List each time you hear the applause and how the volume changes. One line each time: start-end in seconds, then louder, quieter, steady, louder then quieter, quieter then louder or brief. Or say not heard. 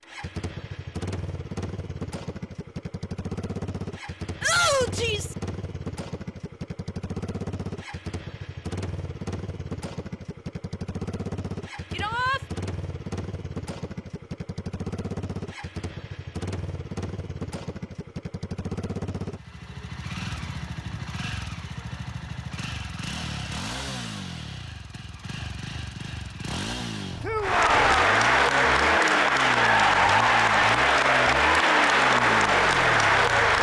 27.4-33.5 steady.